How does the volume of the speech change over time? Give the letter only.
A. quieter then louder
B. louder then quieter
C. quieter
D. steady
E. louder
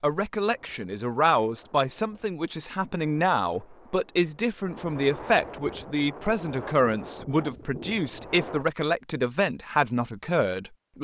D.